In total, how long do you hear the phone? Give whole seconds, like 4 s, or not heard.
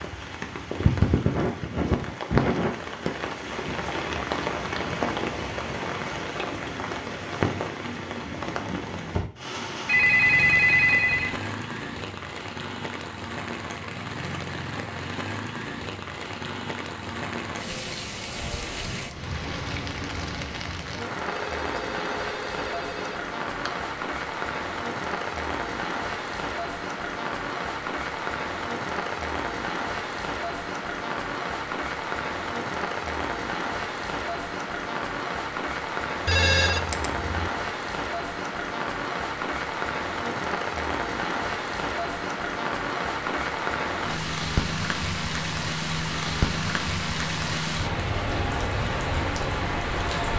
5 s.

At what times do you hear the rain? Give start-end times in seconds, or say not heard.
0.0-50.3.